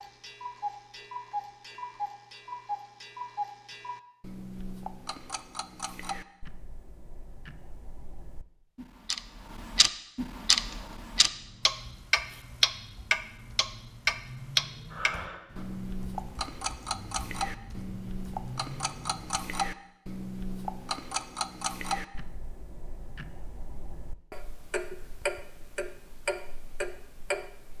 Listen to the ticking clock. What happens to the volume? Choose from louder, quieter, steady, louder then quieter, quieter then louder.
louder then quieter.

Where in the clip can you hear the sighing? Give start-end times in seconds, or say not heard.
14.9-15.7.